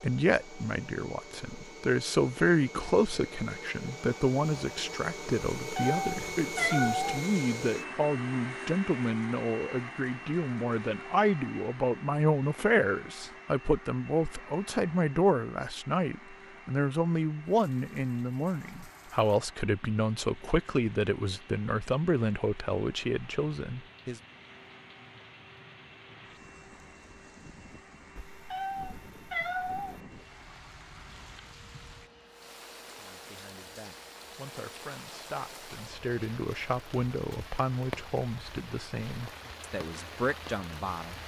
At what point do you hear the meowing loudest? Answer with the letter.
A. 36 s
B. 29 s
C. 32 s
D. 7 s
D.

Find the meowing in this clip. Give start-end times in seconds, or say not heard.
5.7-7.2, 28.1-30.0.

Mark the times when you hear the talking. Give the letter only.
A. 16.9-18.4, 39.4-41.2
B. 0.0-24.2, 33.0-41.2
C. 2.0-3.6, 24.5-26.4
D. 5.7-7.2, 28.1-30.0
B.